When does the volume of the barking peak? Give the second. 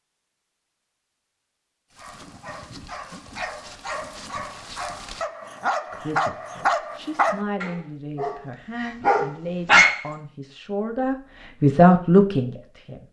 10 s.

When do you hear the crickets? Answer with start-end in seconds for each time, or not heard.
not heard.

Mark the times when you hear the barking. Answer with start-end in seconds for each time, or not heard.
1.9-10.1.